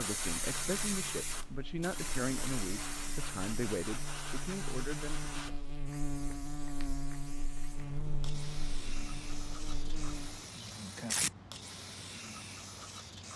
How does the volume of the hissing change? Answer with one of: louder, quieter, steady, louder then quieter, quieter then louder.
quieter then louder.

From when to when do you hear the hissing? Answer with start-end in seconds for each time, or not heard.
0.0-13.3.